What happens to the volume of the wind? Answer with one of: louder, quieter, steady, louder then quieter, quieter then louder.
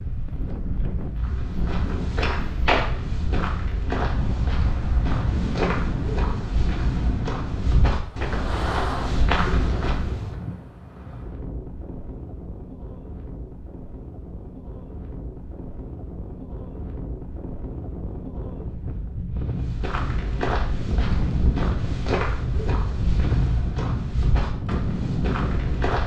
quieter then louder.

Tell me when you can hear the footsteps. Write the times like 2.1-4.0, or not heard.
1.2-10.3, 19.6-26.0.